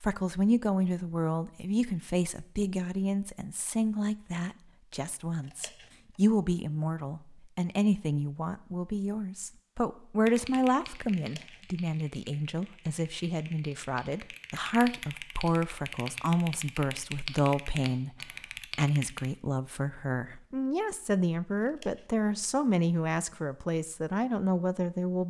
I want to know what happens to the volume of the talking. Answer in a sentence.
The volume of the talking stays about the same.